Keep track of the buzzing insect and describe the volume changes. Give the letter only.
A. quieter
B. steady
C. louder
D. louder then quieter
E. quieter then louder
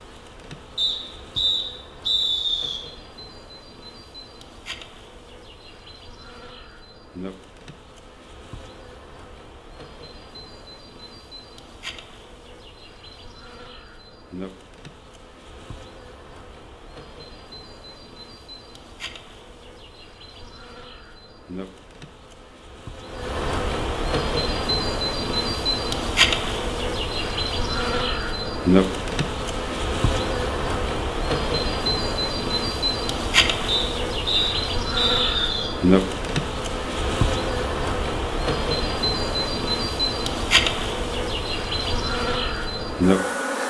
C.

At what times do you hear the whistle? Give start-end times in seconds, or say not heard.
0.8-2.8, 33.6-35.7.